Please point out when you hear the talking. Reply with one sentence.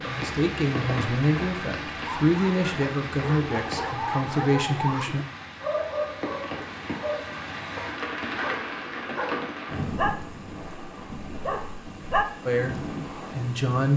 You can hear the talking from 0.0 to 5.2 s and from 12.4 to 13.9 s.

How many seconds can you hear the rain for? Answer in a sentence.
You can hear the rain for 14 seconds altogether.